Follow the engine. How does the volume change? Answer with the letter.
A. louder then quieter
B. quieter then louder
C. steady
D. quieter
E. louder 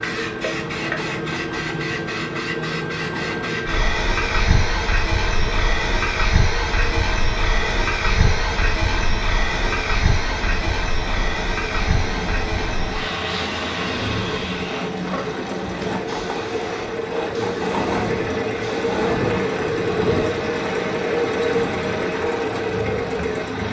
E.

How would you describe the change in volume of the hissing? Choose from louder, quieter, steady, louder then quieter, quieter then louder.
quieter.